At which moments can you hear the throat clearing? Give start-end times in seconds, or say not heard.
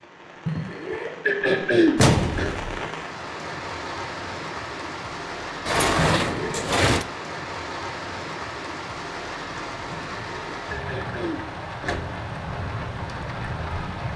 0.5-2.5, 6.0-6.7, 9.9-12.0.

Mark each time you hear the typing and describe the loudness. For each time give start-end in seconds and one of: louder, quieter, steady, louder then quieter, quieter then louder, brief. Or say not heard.
not heard.